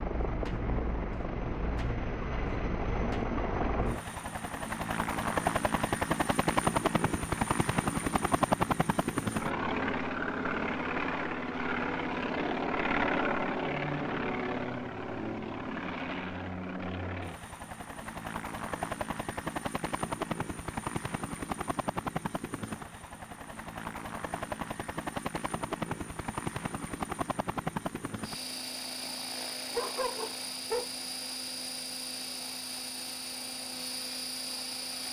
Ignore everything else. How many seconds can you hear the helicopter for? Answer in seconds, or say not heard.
35 s.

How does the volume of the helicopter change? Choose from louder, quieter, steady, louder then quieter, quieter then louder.
quieter.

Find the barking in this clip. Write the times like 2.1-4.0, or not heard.
29.7-30.9.